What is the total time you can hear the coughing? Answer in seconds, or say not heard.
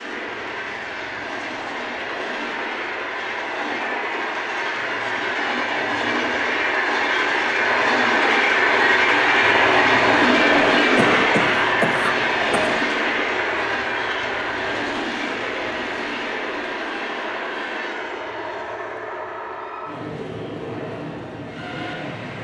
2 s.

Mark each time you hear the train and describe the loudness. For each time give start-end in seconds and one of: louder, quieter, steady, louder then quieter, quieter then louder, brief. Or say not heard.
0.0-22.3 louder then quieter.